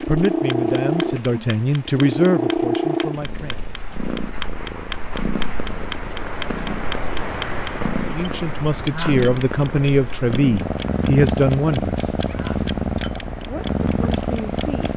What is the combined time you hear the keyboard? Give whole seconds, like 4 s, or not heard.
not heard.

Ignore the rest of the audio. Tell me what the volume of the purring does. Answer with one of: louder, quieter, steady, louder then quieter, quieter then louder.
quieter then louder.